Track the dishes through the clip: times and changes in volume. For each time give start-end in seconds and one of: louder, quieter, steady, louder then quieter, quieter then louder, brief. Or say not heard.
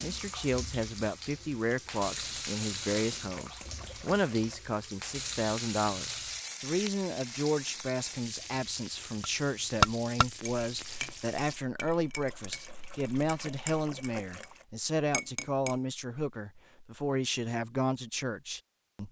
9.2-14.5 quieter then louder
15.1-15.8 brief.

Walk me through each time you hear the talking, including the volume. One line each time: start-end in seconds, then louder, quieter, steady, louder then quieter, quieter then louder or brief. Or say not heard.
0.0-19.0 steady.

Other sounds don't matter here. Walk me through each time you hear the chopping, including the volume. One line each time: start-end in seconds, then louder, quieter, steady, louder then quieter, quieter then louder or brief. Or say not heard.
not heard.